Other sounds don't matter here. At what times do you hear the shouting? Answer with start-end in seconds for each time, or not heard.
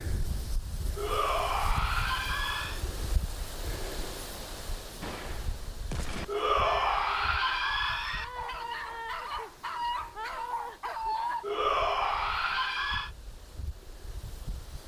0.9-2.9, 6.2-8.2, 11.4-13.1.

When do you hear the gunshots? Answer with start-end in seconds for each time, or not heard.
5.0-6.2.